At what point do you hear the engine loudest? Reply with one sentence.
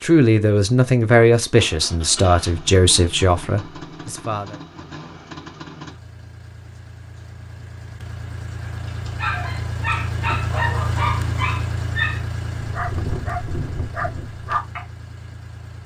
The loudest moment of the engine is at 11 seconds.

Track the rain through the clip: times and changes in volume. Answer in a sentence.
The rain can't be heard in this clip.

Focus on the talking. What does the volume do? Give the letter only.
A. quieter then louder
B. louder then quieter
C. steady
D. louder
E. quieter
E.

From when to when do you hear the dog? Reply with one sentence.
You can hear the dog from 8.6 to 14.8 s.